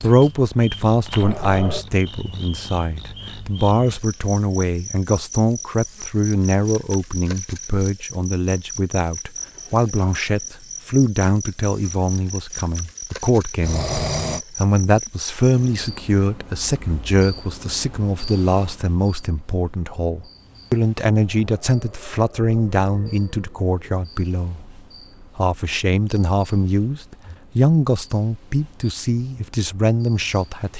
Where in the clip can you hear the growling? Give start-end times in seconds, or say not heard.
1.2-1.9, 13.6-14.4, 21.2-23.9.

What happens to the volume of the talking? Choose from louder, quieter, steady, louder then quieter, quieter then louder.
steady.